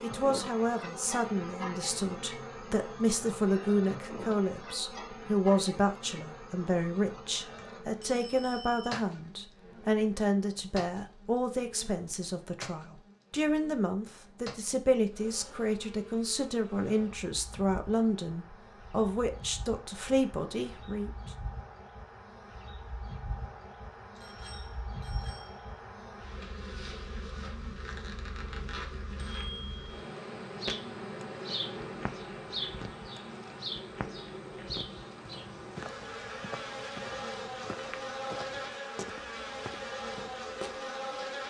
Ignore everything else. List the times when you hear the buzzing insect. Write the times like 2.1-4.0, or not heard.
0.0-41.4.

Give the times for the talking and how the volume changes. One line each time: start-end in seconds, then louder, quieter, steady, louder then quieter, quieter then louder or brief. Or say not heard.
0.0-21.1 steady.